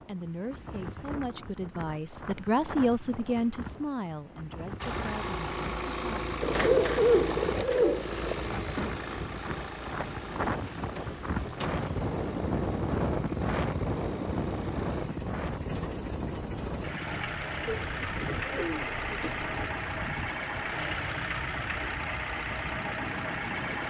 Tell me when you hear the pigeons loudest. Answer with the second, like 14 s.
7 s.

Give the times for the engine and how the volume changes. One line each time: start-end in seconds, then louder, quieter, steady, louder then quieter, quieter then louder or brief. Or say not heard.
4.8-23.8 quieter then louder.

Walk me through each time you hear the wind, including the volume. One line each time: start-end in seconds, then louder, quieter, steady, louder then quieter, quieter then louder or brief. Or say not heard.
0.0-23.8 louder then quieter.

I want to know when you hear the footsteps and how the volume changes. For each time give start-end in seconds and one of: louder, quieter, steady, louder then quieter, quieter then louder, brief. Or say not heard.
not heard.